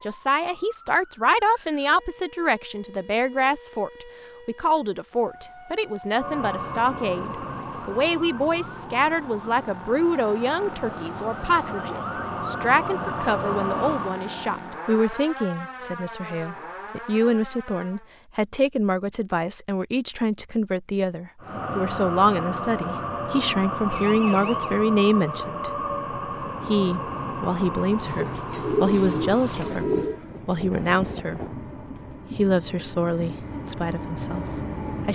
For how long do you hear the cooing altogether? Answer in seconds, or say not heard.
2 s.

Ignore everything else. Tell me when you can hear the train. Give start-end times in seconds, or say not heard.
6.1-14.2, 21.4-35.1.